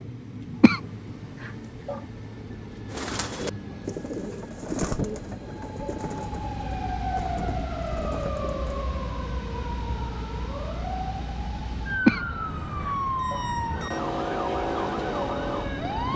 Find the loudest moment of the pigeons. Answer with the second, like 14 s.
5 s.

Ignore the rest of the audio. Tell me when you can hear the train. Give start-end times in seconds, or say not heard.
0.0-16.1.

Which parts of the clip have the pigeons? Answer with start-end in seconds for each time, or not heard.
2.9-8.8.